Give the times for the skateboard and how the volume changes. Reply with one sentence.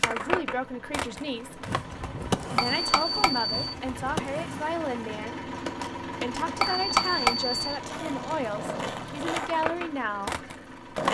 You can hear the skateboard from 0.0 to 11.1 s, getting quieter then louder.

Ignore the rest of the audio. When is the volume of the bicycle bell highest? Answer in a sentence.
The loudest moment of the bicycle bell is at 7 seconds.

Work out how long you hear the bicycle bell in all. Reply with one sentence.
You can hear the bicycle bell for 2 seconds altogether.